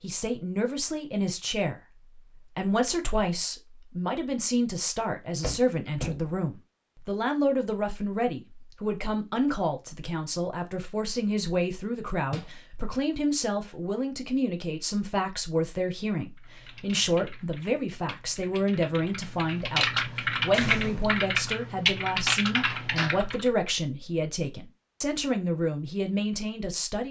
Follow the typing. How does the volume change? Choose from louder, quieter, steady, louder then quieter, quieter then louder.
louder.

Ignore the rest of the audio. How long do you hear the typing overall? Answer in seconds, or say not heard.
7 s.